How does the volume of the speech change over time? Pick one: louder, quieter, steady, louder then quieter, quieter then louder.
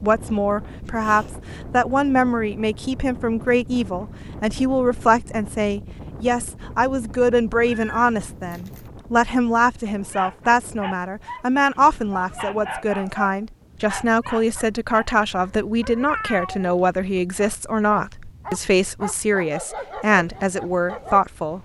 steady.